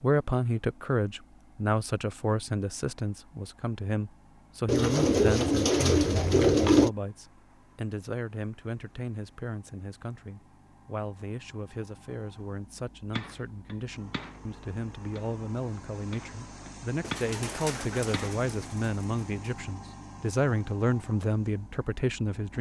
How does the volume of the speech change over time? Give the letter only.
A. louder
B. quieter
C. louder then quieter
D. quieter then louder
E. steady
D.